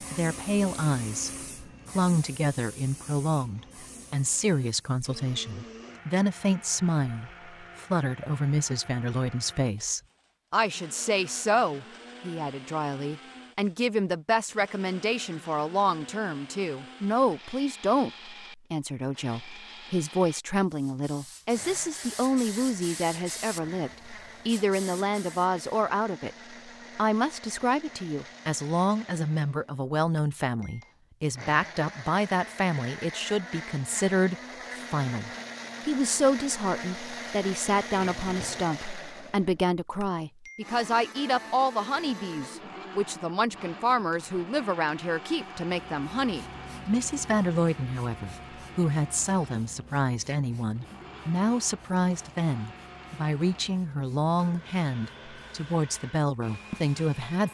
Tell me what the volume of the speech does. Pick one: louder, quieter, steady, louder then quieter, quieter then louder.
steady.